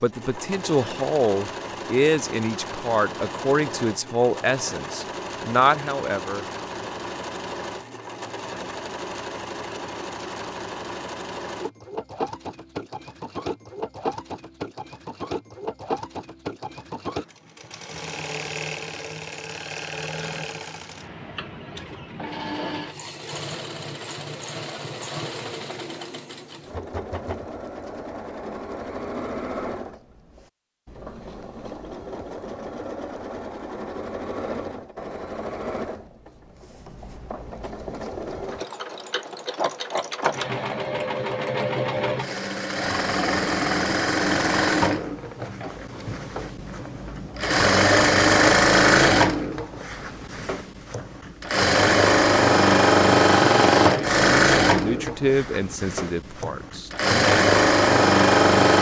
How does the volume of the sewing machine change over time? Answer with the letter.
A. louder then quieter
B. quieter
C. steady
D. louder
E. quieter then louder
D.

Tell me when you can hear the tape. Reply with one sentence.
The tape can't be heard in this clip.